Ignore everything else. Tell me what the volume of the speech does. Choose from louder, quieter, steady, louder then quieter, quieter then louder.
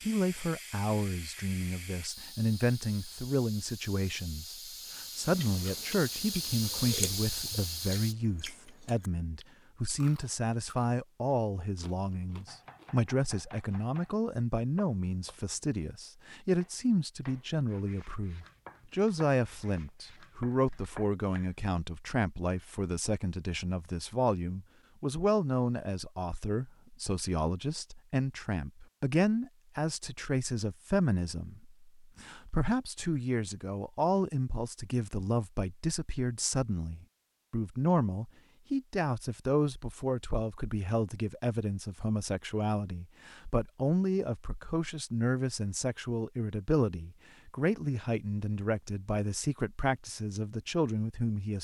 steady.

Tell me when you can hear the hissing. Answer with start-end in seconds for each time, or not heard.
0.0-8.2.